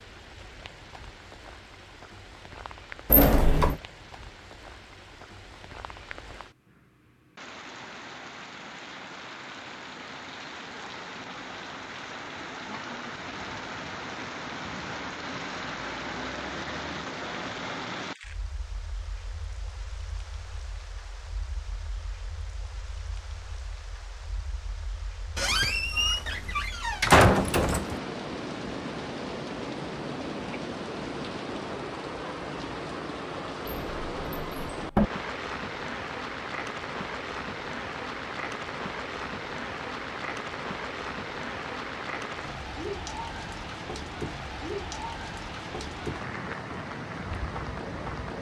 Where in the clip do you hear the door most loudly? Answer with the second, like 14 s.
27 s.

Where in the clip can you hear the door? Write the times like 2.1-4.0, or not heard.
3.1-3.8, 25.4-28.0, 33.6-35.1.